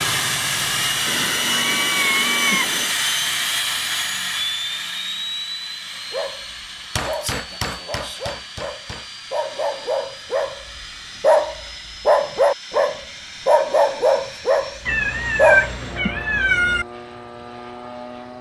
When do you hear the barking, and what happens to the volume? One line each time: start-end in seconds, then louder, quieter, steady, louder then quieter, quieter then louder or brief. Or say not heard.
6.1-15.8 louder.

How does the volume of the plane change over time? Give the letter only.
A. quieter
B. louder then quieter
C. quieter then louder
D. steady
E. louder
A.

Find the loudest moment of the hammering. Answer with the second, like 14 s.
7 s.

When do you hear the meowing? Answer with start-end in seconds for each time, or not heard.
1.1-3.0, 14.8-16.9.